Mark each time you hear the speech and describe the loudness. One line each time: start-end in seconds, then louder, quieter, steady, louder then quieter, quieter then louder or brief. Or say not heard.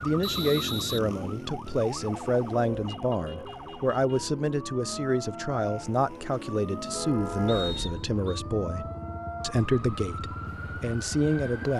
0.0-11.7 steady.